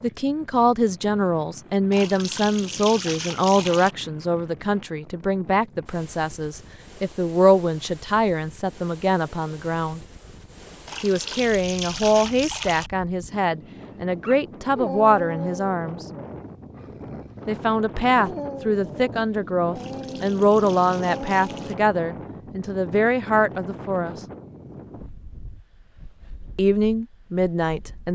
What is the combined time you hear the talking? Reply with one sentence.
The talking can be heard for 23 seconds in total.